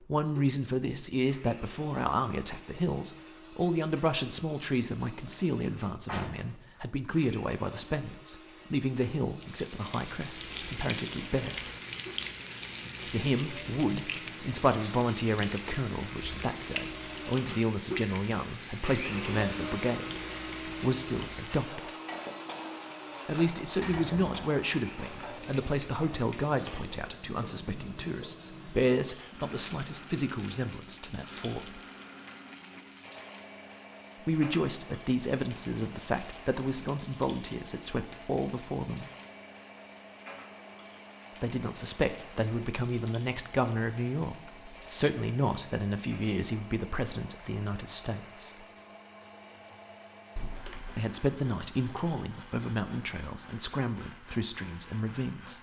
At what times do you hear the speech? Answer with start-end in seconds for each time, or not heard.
0.0-11.6, 13.1-21.9, 23.2-31.8, 34.2-39.0, 41.4-48.6, 51.0-55.5.